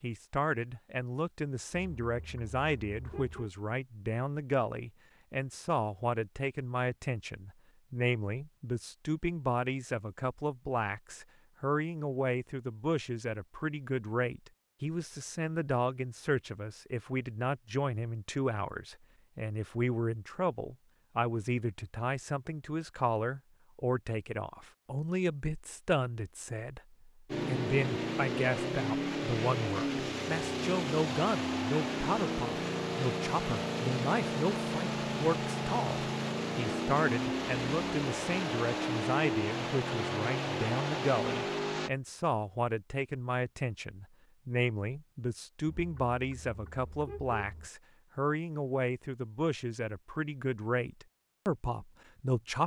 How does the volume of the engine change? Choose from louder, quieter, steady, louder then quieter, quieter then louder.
steady.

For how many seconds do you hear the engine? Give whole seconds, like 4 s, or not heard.
15 s.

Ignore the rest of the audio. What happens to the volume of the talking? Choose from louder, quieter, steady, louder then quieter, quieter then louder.
steady.